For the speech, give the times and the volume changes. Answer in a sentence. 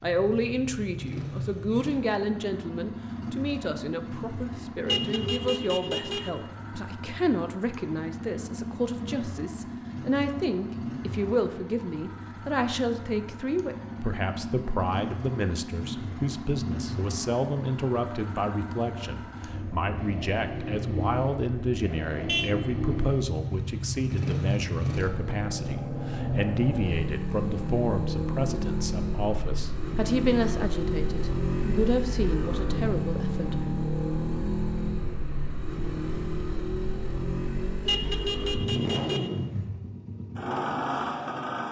The speech can be heard from 0.0 to 33.5 s, at a steady volume.